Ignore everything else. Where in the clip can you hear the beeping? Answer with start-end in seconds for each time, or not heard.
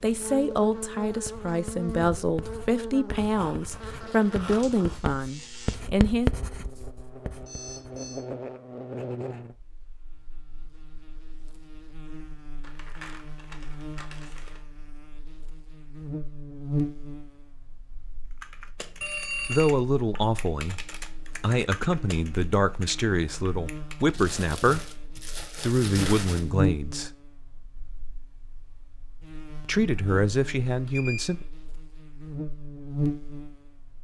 7.5-8.2, 19.0-19.8, 30.9-31.4.